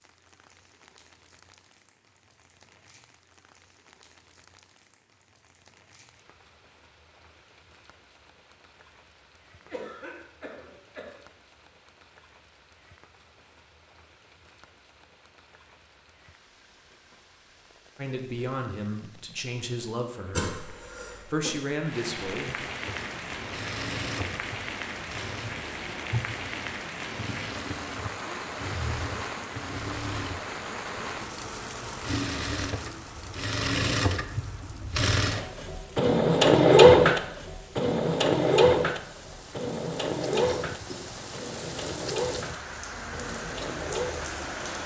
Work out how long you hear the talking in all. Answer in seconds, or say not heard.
4 s.